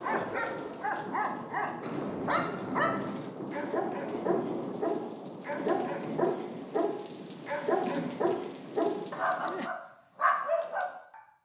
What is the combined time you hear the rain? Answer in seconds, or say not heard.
10 s.